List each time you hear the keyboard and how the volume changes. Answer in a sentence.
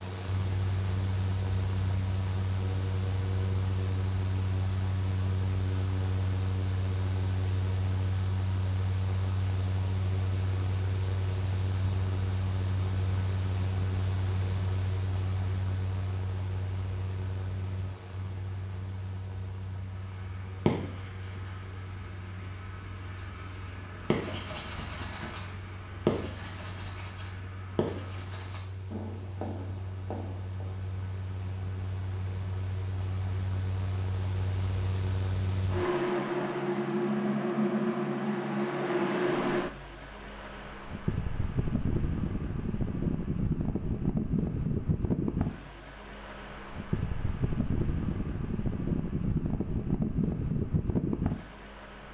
The keyboard can't be heard in this clip.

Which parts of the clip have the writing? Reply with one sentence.
You can hear the writing from 19.8 to 30.8 s.